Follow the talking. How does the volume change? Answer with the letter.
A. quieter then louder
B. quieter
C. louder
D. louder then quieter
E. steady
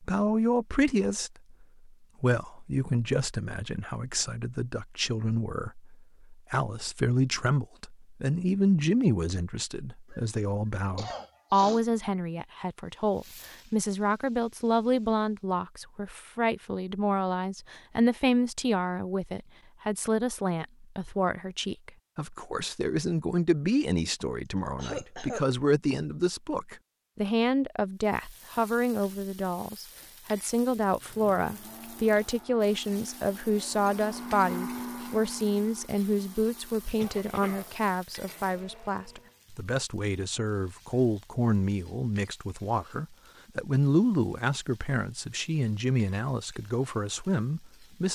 E.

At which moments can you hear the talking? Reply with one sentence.
The talking can be heard from 0.0 to 48.1 s.